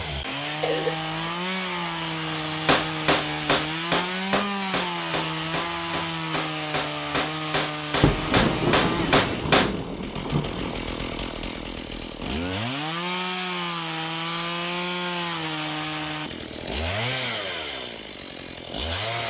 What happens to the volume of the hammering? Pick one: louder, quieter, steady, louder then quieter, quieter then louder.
quieter then louder.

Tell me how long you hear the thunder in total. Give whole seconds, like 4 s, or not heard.
3 s.